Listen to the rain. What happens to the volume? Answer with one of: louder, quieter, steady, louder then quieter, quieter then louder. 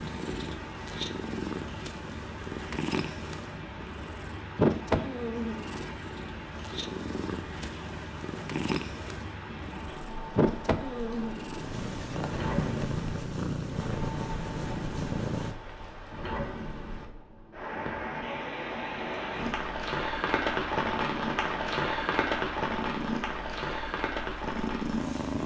louder.